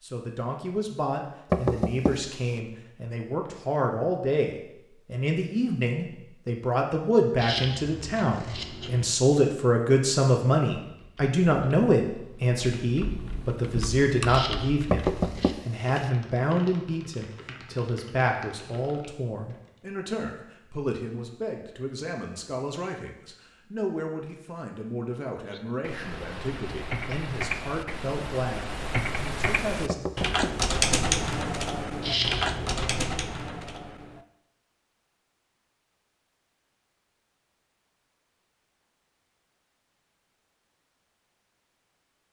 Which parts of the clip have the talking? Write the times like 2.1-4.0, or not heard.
0.0-30.1.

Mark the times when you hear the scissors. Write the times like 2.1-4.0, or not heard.
7.3-9.2, 14.2-15.6, 32.0-33.1.